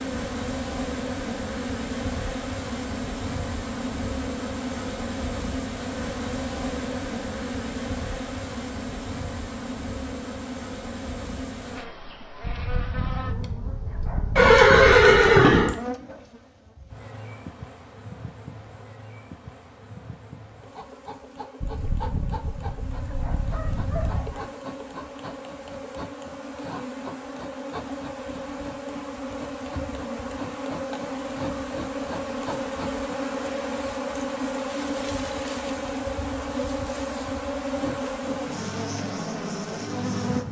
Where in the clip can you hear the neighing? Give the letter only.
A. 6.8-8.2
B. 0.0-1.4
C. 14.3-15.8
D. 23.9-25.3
C.